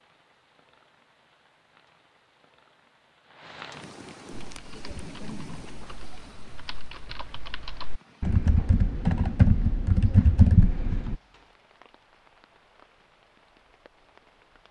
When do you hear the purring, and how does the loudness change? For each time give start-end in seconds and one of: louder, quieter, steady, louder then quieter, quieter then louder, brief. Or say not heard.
not heard.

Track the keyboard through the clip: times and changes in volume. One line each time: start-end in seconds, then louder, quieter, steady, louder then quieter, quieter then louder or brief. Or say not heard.
4.3-11.2 louder.